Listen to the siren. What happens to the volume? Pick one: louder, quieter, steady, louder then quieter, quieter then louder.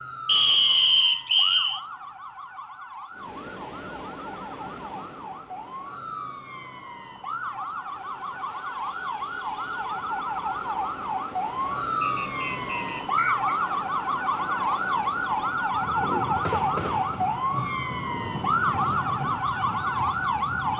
louder.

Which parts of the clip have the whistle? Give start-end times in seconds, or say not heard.
0.2-1.8, 12.0-13.6.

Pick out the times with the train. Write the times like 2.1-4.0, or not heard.
3.1-20.7.